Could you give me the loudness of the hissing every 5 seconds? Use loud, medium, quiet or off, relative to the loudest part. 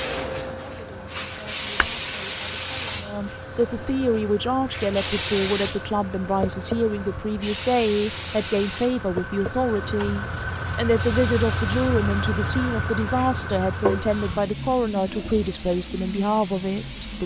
loud, loud, medium, medium.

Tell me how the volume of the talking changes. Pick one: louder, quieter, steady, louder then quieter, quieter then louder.
louder.